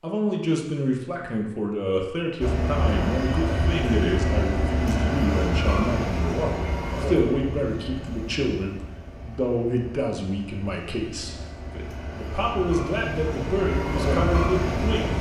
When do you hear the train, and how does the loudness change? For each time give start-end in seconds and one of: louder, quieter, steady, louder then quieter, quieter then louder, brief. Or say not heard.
2.4-15.1 quieter then louder.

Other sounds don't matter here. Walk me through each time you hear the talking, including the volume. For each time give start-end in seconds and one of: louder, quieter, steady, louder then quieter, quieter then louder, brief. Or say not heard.
0.0-15.1 steady.